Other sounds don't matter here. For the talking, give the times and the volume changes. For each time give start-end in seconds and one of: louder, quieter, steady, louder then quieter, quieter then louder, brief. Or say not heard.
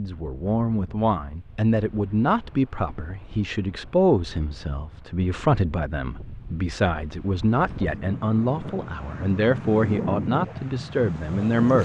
0.0-11.8 steady.